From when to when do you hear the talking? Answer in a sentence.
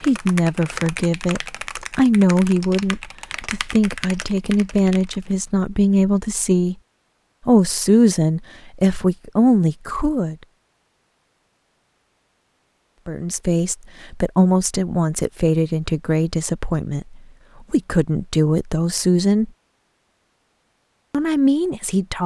You can hear the talking from 0.0 to 6.8 s, from 7.5 to 10.3 s, from 13.1 to 19.5 s and from 21.1 to 22.2 s.